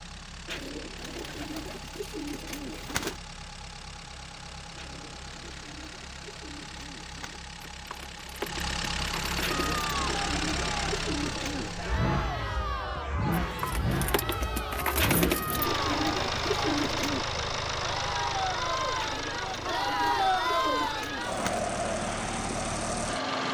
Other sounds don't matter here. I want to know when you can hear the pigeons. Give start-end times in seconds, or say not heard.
0.5-3.1, 4.8-7.4, 9.4-11.8, 14.9-17.2, 18.9-21.6.